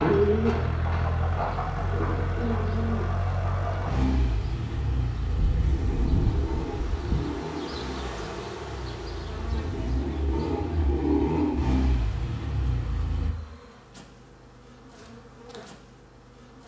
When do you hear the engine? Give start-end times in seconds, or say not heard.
0.0-13.3.